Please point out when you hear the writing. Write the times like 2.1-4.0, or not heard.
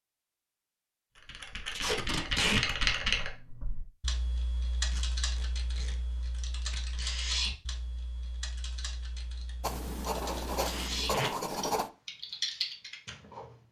9.6-11.9.